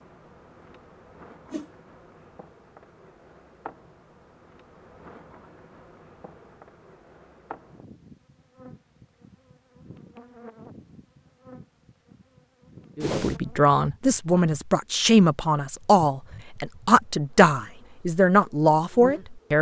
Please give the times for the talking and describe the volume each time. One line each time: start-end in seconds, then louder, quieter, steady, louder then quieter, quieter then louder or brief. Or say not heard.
12.9-19.5 steady.